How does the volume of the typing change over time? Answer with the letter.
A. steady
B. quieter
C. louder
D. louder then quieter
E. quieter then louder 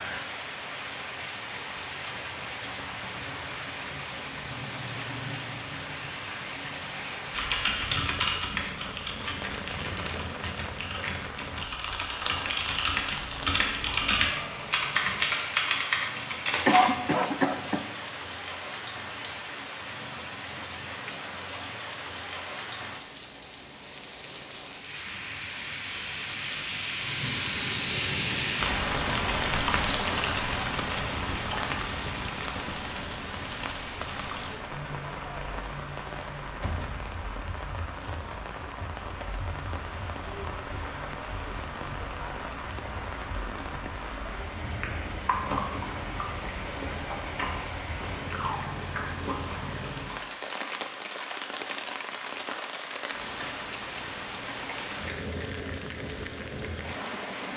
E.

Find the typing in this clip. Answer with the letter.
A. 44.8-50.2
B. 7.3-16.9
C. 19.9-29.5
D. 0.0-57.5
B.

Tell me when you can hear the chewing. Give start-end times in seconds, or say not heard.
44.8-50.2.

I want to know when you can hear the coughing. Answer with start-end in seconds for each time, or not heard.
16.6-17.9.